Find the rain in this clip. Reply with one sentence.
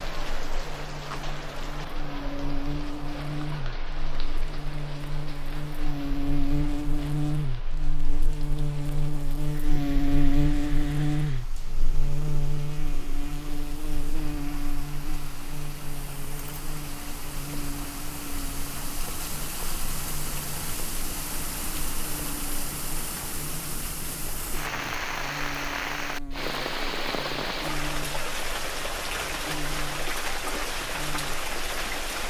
You can hear the rain from 0.0 to 32.2 s.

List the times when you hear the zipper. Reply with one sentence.
You can't hear the zipper here.